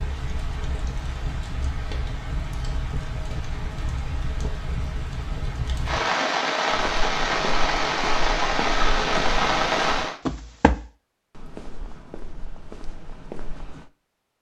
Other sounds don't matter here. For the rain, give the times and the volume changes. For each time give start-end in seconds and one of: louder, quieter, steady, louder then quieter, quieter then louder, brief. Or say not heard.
0.0-10.2 louder.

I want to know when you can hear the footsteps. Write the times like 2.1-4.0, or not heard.
6.7-13.9.